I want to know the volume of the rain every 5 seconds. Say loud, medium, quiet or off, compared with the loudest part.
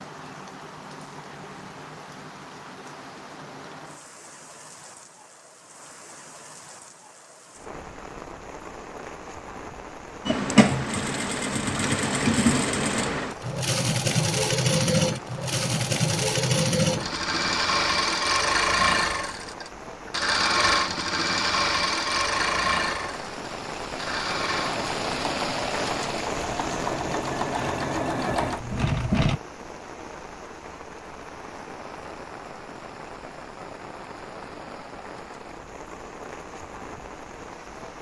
medium, medium, medium, medium, loud, loud, medium, medium.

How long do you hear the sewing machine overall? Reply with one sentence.
You can hear the sewing machine for 19 seconds altogether.